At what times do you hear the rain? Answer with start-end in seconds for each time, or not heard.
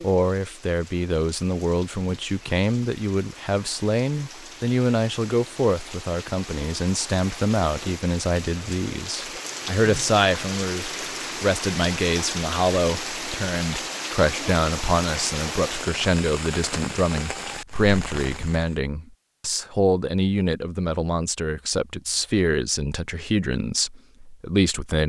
0.0-18.8.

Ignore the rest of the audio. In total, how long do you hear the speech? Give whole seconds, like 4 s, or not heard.
25 s.